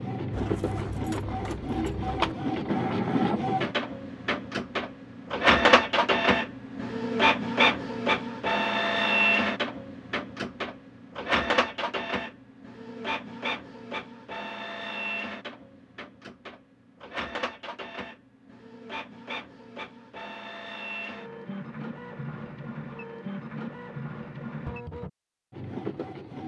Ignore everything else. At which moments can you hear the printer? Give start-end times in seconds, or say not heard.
0.0-26.4.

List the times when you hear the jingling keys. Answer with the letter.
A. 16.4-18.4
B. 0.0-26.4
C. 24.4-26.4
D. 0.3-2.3
D.